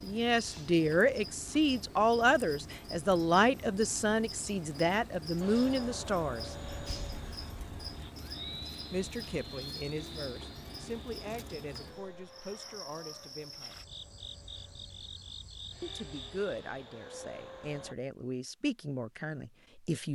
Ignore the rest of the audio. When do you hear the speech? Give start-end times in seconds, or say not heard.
0.0-6.5, 8.9-13.8, 15.8-20.1.